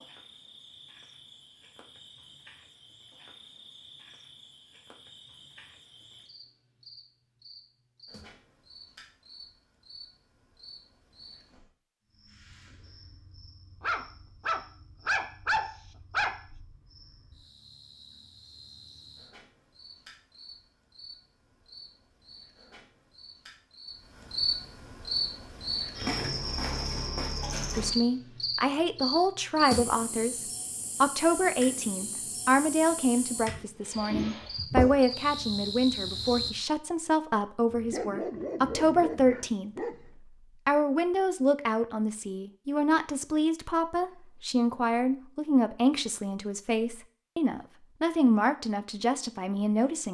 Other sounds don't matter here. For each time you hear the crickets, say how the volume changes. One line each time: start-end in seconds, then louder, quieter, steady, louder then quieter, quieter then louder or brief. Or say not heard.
0.0-36.5 louder.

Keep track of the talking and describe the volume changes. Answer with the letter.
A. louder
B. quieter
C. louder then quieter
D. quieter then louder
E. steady
E.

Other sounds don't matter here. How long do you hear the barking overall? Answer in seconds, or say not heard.
5 s.